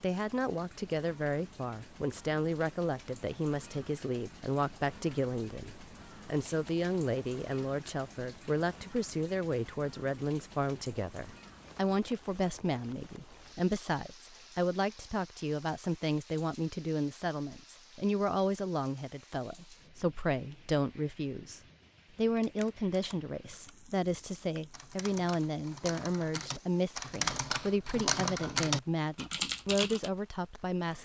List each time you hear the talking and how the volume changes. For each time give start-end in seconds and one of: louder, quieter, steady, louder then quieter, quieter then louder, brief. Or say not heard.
0.0-31.0 steady.